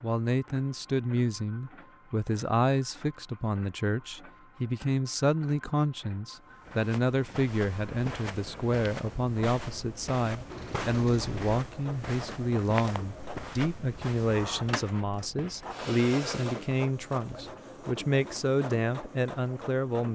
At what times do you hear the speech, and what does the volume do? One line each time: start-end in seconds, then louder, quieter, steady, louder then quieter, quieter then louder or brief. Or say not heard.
0.0-20.1 steady.